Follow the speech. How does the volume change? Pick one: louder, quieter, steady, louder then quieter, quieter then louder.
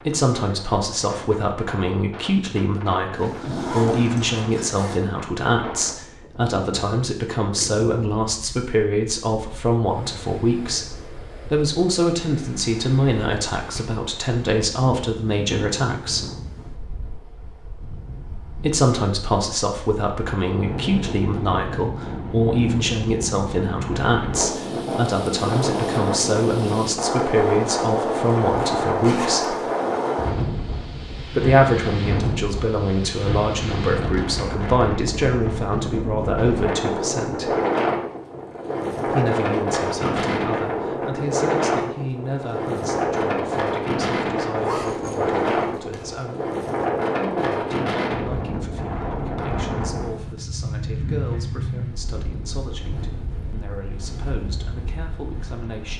quieter.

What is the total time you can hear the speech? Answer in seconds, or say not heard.
50 s.